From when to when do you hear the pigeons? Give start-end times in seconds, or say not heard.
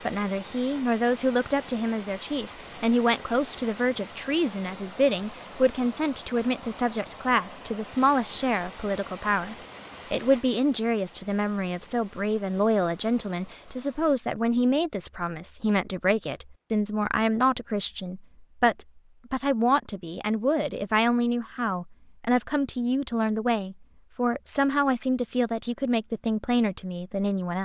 not heard.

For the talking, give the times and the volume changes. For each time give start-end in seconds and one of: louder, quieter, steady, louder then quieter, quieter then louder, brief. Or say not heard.
0.1-27.6 steady.